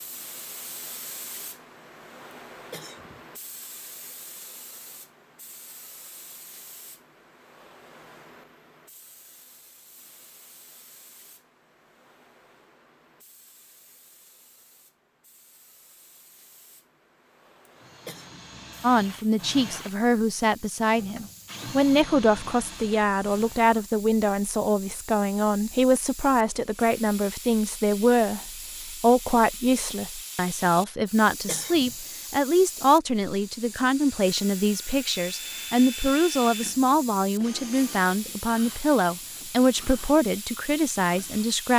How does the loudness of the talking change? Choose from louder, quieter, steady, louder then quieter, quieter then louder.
steady.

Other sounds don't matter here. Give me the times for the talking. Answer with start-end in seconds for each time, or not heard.
18.8-41.7.